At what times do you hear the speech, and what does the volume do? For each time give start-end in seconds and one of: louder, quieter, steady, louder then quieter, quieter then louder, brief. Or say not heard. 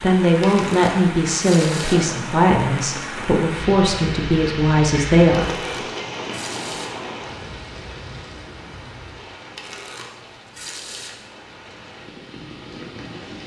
0.0-5.6 steady.